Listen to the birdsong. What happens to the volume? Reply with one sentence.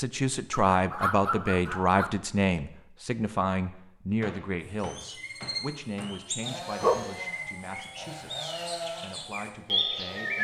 The volume of the birdsong goes up.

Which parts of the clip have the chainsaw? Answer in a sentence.
The chainsaw can be heard from 6.4 to 10.3 s.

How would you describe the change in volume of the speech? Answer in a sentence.
The loudness of the speech goes down.